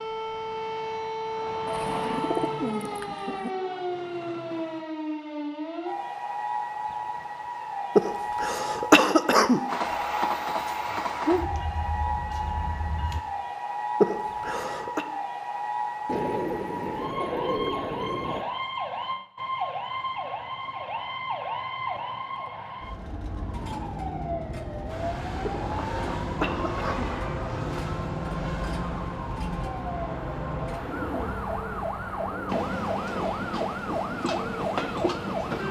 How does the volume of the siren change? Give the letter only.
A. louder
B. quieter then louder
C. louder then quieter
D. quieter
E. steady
E.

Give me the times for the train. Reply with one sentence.
The train can be heard from 0.0 to 4.8 s, from 9.7 to 13.2 s and from 24.9 to 35.6 s.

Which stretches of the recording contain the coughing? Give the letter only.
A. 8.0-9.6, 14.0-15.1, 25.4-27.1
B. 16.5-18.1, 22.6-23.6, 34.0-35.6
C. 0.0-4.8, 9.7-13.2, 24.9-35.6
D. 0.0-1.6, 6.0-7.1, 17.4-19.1
A.